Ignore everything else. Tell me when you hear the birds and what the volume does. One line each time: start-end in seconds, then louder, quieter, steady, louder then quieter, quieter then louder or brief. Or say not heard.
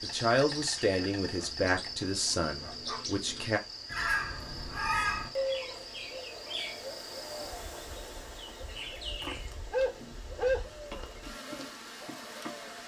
0.0-12.8 louder then quieter.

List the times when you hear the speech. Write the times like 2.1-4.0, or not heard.
0.0-3.6.